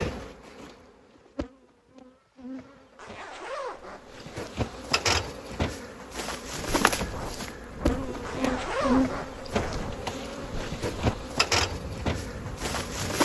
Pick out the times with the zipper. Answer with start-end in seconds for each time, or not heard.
3.0-4.8, 8.2-9.9.